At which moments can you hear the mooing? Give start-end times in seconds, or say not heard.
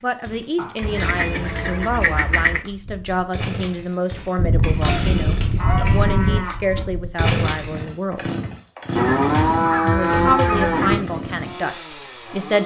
0.6-2.0, 5.5-6.8, 8.9-10.9.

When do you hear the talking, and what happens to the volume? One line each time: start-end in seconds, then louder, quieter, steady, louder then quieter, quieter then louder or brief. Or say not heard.
0.0-8.2 steady
9.8-12.6 brief.